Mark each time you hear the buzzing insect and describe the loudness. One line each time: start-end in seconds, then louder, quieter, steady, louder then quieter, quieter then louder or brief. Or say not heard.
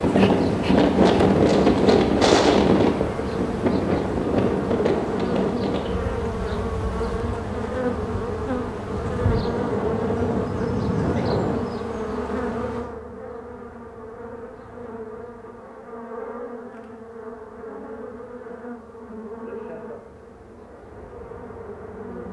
0.0-22.2 quieter.